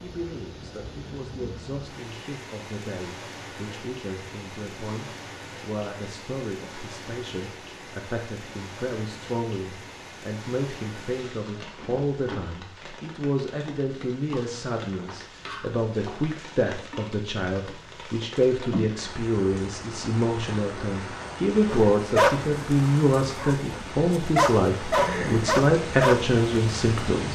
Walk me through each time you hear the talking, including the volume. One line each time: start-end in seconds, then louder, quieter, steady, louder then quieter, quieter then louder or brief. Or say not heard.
0.0-27.3 louder.